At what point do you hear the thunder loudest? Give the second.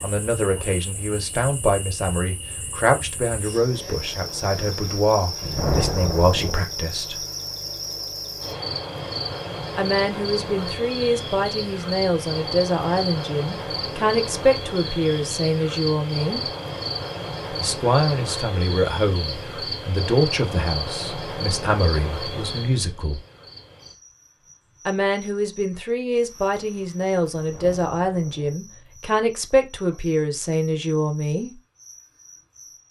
6 s.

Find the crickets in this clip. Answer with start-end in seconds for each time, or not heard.
0.0-32.8.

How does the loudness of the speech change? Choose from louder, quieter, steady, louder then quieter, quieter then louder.
steady.